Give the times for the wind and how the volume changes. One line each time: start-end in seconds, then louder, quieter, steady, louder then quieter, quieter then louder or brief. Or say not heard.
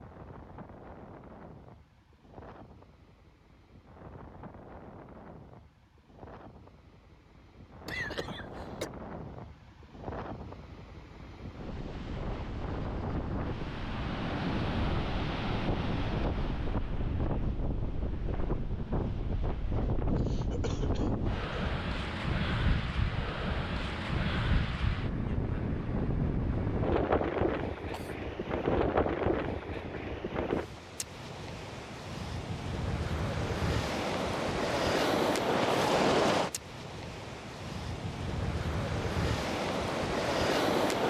0.0-41.0 louder.